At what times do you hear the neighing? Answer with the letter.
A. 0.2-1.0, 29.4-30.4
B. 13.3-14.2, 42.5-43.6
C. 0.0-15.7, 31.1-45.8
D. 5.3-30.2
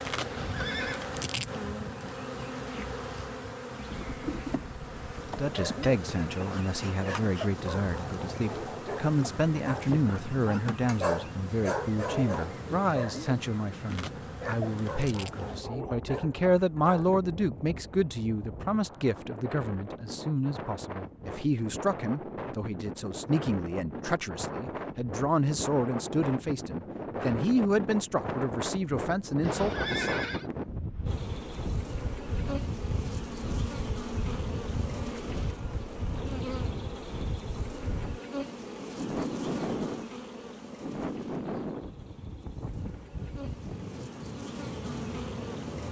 A.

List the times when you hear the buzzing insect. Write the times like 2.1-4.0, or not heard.
0.0-15.7, 31.1-45.8.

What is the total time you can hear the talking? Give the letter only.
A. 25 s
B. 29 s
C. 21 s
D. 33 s
A.